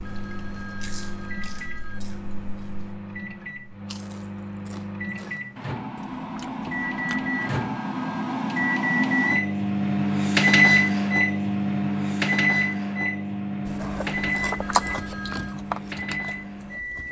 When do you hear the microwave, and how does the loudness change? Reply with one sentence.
You can hear the microwave from 0.0 to 17.0 s, getting louder then quieter.